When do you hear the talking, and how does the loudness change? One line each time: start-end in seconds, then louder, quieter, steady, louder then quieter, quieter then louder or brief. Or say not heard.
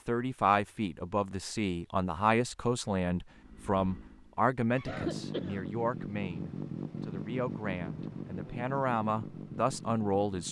0.1-10.4 quieter then louder.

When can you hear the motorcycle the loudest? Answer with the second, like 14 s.
7 s.